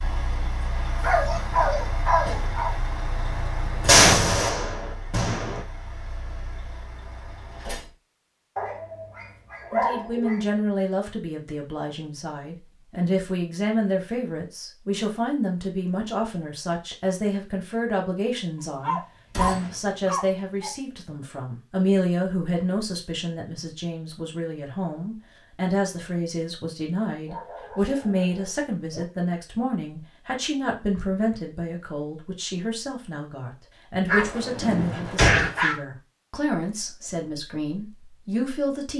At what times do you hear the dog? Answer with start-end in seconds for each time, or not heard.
1.0-2.8, 8.6-10.4, 18.8-20.7, 27.2-29.1, 34.0-35.8.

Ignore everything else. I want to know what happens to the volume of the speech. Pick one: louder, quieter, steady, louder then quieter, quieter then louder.
steady.